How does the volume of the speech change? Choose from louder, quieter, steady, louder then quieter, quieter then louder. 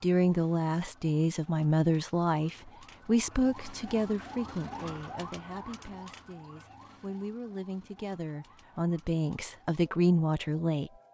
quieter then louder.